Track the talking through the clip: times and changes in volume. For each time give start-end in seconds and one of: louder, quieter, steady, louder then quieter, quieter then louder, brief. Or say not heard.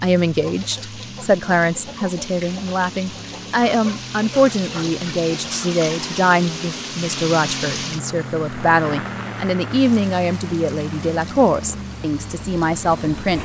0.0-13.3 steady.